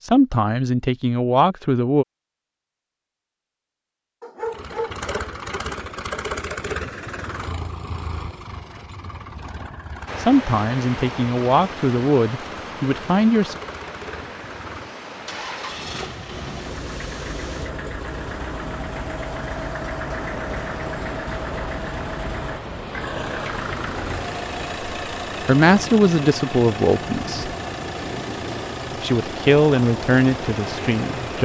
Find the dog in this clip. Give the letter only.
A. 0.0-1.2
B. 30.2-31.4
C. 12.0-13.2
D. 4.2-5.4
D.